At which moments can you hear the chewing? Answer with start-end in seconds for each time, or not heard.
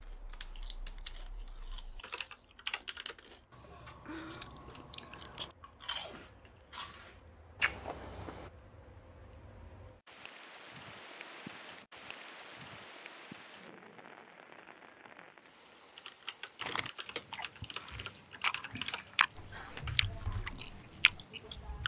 0.0-8.5, 16.6-21.8.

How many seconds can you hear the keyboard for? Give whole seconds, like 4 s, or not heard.
9 s.